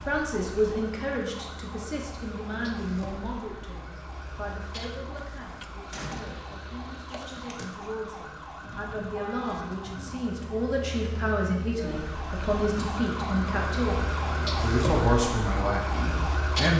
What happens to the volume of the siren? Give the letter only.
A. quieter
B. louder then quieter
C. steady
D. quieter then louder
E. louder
E.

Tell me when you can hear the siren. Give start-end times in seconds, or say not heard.
0.0-16.7.